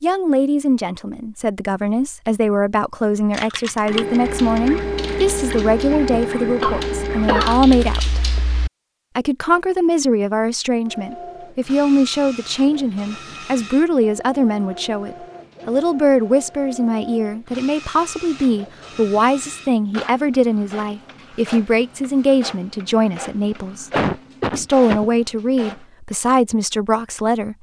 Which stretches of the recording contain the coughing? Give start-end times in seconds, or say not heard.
5.9-7.6, 23.9-25.1.